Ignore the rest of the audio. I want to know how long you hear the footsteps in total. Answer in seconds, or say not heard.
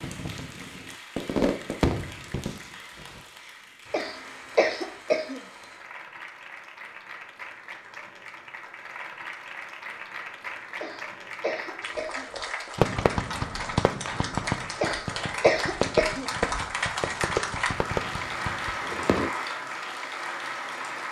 not heard.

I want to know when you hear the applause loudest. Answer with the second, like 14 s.
17 s.